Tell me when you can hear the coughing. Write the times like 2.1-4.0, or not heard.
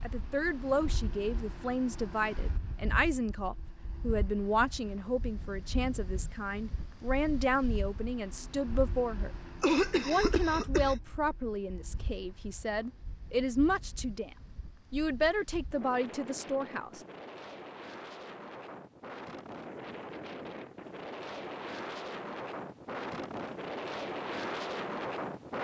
9.6-10.9.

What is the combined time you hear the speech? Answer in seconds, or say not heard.
16 s.